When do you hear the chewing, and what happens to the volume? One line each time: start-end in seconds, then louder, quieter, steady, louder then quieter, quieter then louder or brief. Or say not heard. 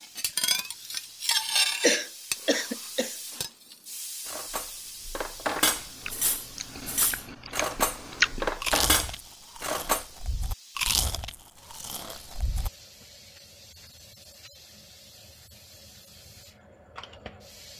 5.6-12.7 louder then quieter.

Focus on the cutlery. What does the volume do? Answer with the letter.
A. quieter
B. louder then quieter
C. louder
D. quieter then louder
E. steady
D.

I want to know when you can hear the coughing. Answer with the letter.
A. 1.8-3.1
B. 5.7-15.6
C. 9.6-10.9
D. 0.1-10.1
A.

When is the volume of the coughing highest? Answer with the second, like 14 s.
2 s.